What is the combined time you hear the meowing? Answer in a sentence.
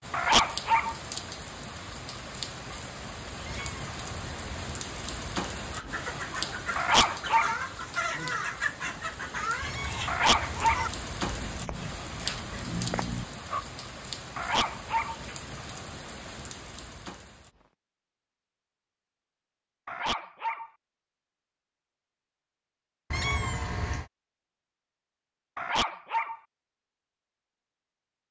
You can hear the meowing for 4 seconds altogether.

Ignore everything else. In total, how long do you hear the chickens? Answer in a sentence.
The chickens can be heard for 8 seconds in total.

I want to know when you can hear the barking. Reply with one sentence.
You can hear the barking from 0.1 to 0.9 s, from 6.8 to 7.5 s, from 10.1 to 10.9 s, from 14.3 to 15.2 s, from 19.9 to 20.7 s and from 25.6 to 26.4 s.